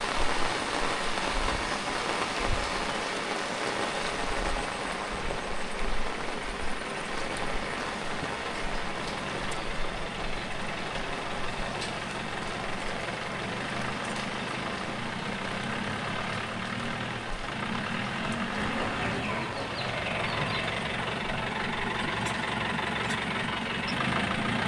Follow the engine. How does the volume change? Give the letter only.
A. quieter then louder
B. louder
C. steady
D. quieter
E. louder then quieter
B.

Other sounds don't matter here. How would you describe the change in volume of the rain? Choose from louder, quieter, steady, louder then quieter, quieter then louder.
quieter.